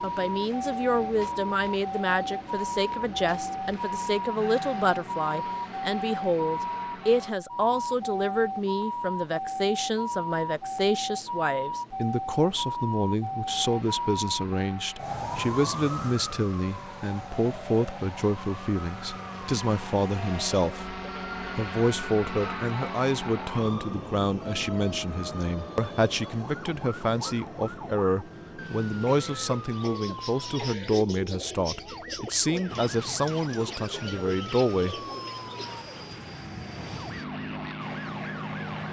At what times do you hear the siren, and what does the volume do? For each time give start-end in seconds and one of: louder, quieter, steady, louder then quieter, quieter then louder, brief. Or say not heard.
0.0-38.8 quieter.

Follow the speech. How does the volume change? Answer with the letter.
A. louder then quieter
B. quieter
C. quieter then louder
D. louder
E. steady
E.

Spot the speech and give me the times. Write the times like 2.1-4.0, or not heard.
0.0-35.0.